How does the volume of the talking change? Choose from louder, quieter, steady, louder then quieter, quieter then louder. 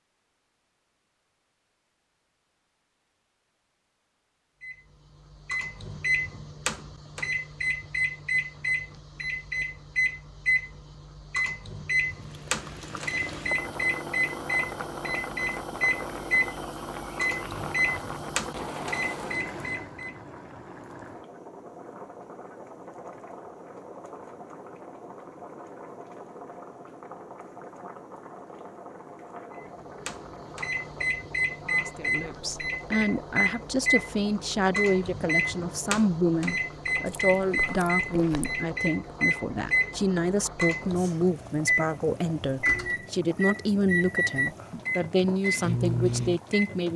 steady.